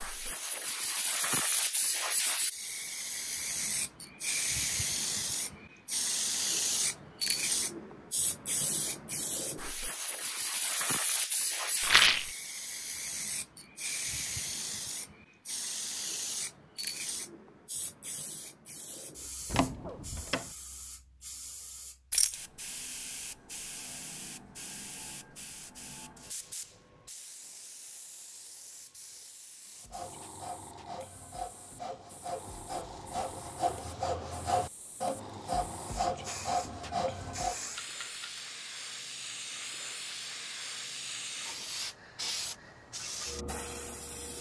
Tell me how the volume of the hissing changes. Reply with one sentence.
The volume of the hissing goes down, then up.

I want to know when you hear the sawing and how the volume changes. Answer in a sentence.
The sawing can be heard from 29.8 to 37.5 s, getting louder.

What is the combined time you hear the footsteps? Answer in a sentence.
You can't hear the footsteps here.